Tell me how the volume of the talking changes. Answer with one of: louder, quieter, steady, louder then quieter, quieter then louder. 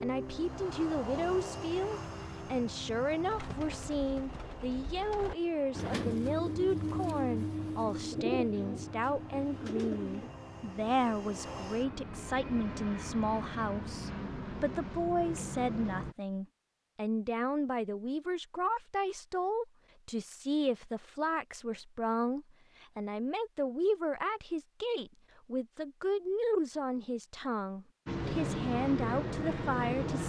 steady.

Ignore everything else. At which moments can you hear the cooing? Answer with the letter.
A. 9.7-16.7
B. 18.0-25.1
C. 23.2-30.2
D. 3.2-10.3
D.